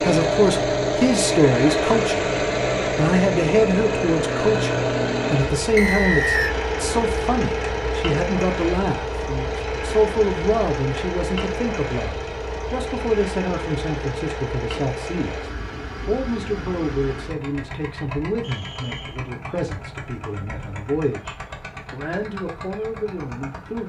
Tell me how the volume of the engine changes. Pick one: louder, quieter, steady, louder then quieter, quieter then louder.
quieter.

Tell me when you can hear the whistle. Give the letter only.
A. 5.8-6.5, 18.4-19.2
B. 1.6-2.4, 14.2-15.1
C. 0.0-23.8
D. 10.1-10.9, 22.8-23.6
A.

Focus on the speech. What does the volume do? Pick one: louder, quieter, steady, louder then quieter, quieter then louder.
quieter.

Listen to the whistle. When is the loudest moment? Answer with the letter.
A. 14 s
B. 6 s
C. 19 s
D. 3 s
B.